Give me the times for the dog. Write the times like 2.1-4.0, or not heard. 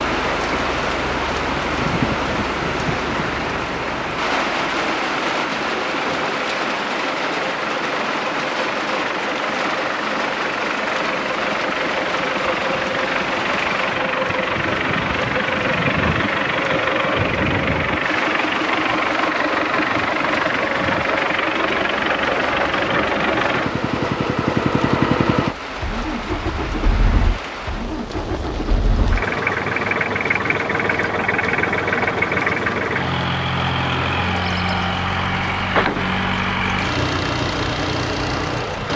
not heard.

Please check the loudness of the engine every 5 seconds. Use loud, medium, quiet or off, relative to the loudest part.
medium, medium, loud, loud, loud, loud, loud, loud.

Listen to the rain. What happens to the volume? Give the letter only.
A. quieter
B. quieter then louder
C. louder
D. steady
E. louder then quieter
A.